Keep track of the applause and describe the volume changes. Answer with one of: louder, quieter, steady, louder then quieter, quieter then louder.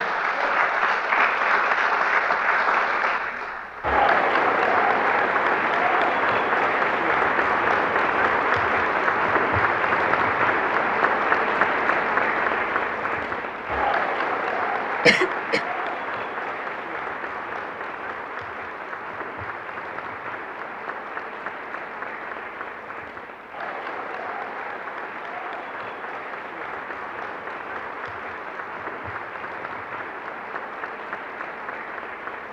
quieter.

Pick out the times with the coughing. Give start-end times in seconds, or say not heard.
15.1-15.6.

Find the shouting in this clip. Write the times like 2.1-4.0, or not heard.
not heard.